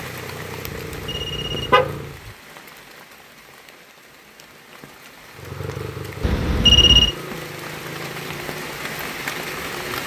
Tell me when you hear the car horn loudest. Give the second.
7 s.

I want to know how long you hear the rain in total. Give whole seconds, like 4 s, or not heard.
10 s.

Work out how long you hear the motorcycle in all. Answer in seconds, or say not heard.
7 s.